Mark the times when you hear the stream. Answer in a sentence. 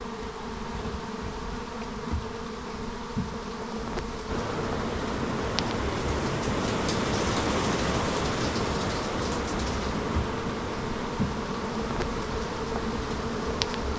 The stream can be heard from 4.2 to 13.9 s.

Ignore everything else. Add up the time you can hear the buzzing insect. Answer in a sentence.
The buzzing insect can be heard for 14 seconds in total.